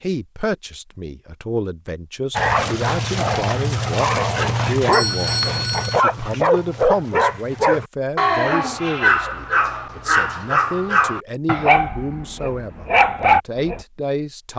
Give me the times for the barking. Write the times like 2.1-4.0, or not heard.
2.4-13.8.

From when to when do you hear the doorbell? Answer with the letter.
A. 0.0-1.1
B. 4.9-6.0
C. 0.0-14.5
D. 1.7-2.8
B.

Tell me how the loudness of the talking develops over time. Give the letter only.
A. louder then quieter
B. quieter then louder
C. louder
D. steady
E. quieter
D.